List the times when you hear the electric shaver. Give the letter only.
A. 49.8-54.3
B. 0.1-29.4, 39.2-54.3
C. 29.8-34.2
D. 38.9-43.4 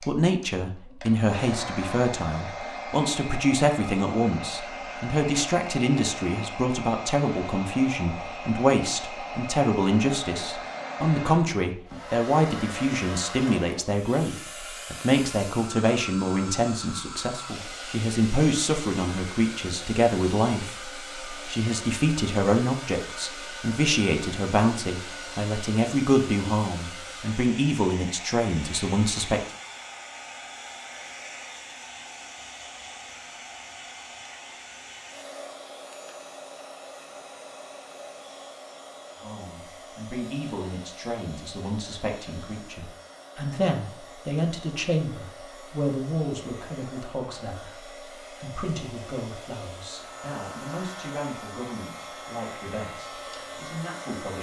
A.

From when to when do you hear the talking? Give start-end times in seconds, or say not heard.
0.1-29.4, 39.2-54.3.